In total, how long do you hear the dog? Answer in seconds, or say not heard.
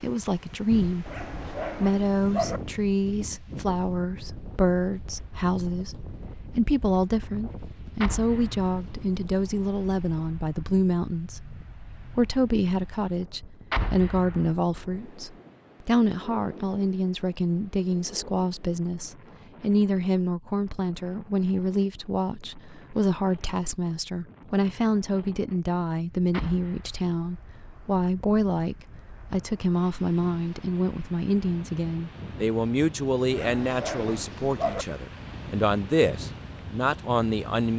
3 s.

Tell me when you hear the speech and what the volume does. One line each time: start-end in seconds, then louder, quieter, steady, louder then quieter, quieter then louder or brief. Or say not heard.
0.0-37.7 steady.